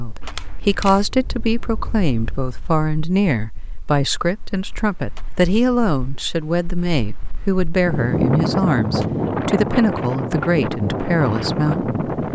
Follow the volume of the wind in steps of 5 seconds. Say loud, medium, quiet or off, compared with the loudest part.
quiet, loud, loud.